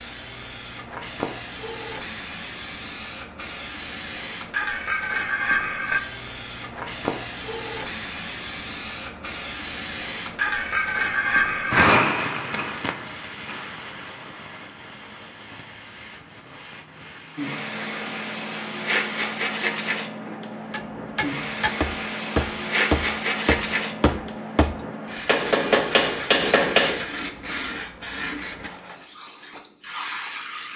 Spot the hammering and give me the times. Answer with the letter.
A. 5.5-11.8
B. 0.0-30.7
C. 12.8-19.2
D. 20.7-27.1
D.